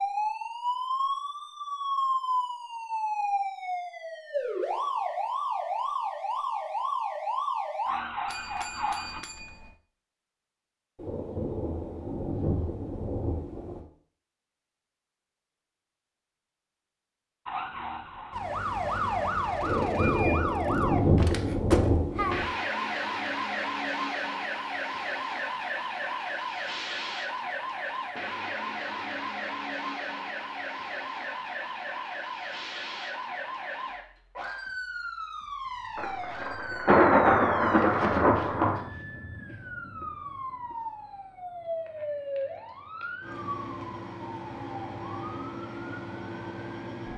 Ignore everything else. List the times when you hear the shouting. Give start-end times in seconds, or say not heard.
not heard.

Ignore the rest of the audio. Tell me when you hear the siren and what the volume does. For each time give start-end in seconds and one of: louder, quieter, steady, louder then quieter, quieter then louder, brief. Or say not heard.
0.0-9.2 steady
17.4-47.1 quieter.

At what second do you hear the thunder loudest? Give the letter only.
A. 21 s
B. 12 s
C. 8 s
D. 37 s
D.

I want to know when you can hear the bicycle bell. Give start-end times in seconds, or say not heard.
8.2-9.8.